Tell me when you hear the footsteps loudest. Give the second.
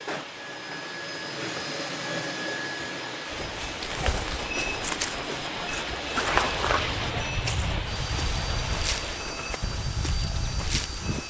6 s.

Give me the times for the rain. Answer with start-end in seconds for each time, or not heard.
0.0-11.2.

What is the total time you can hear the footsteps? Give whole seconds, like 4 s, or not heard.
8 s.